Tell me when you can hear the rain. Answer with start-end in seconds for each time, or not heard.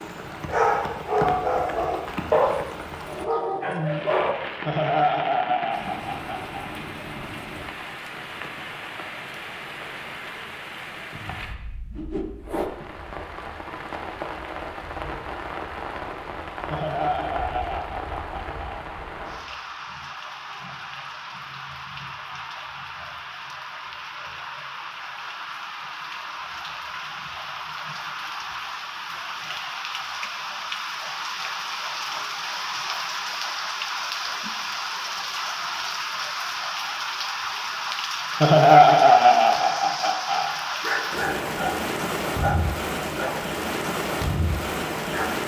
0.0-45.4.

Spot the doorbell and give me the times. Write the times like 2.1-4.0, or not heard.
not heard.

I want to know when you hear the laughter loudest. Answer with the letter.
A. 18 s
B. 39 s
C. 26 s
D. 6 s
B.